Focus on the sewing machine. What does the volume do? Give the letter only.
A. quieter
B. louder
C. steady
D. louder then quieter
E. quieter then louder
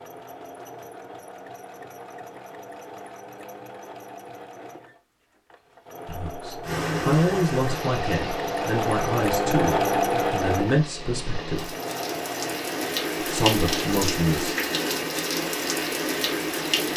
D.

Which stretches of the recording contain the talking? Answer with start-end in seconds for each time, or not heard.
6.0-11.7, 13.3-14.6.